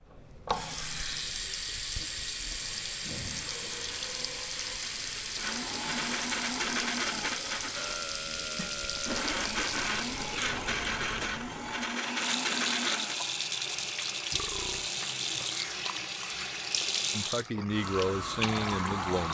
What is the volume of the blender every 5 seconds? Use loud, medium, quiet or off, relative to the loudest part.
quiet, loud, loud, off.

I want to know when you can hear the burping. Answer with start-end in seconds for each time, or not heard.
3.5-4.8, 7.8-9.3, 14.3-14.9.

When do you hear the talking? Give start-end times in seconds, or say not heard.
17.1-19.2.